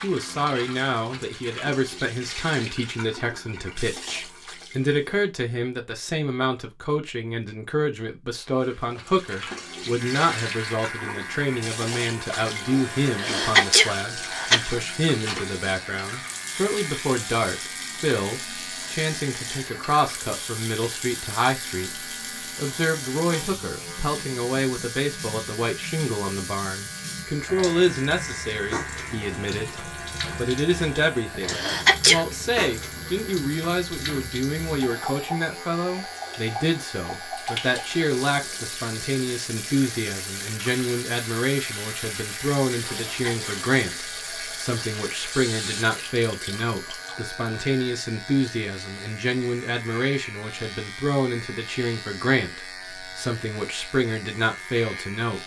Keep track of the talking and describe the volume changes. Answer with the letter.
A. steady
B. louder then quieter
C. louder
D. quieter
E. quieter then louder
A.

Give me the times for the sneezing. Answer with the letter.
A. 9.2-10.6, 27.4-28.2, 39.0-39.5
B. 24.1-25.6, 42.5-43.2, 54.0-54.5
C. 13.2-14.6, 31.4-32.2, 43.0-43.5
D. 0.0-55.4
C.